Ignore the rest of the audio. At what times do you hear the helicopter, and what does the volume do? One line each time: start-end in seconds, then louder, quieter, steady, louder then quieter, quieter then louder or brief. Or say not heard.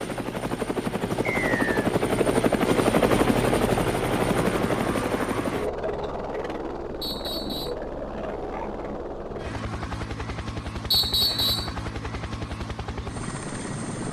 0.0-14.0 quieter.